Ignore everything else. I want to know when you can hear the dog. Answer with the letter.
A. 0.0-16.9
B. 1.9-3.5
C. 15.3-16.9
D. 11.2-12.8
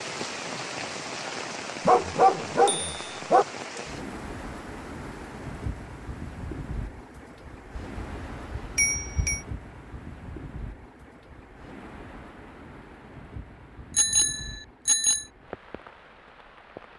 B.